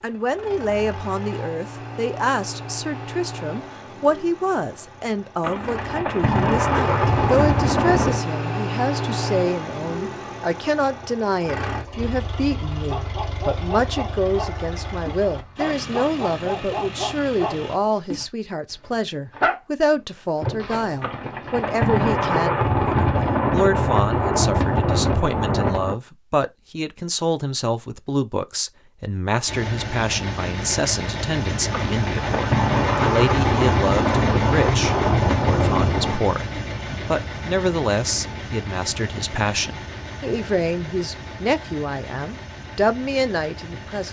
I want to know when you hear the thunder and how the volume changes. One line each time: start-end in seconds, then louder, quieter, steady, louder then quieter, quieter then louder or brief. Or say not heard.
5.4-8.2 brief
21.0-25.9 steady
31.7-36.2 steady.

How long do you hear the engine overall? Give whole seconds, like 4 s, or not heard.
32 s.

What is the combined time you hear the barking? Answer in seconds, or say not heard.
9 s.